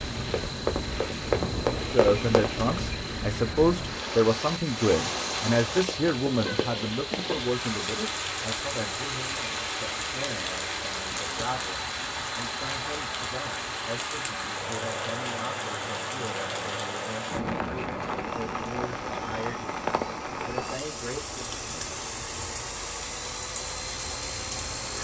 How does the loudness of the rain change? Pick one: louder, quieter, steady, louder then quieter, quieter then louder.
steady.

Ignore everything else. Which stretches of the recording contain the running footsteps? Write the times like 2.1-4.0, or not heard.
0.2-2.6.